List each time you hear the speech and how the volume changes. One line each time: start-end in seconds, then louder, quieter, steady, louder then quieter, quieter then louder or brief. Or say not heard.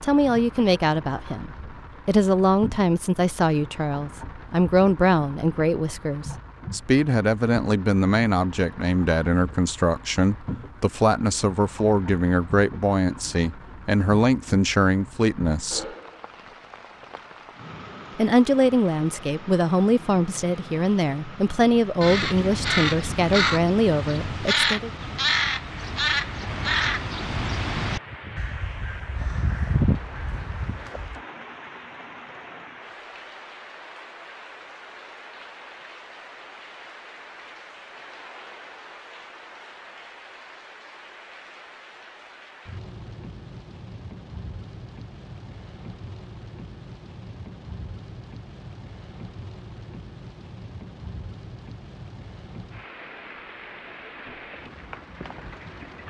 0.0-15.8 steady
18.1-24.9 steady.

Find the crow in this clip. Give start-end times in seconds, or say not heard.
22.0-31.2.